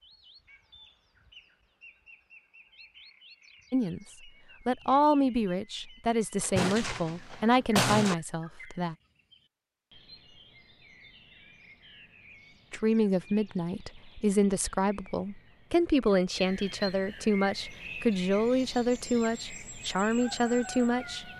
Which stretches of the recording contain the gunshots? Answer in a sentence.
The gunshots can be heard from 6.4 to 8.2 s.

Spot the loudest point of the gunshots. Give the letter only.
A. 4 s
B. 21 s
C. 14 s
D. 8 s
D.